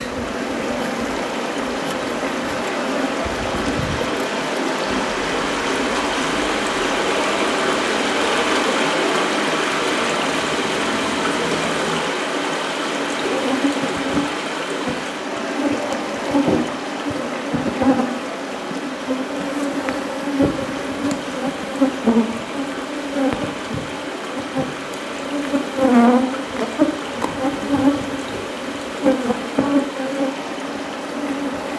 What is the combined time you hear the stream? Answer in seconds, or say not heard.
32 s.